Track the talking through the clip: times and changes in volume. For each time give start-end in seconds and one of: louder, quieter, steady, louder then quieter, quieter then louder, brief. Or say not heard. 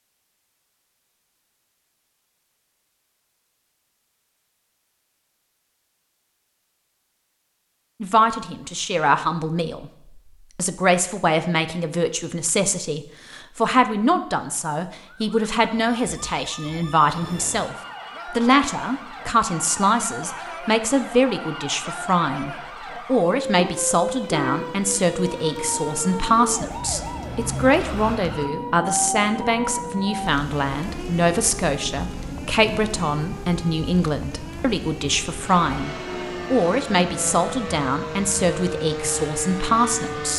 8.0-9.9 brief
10.6-40.3 steady.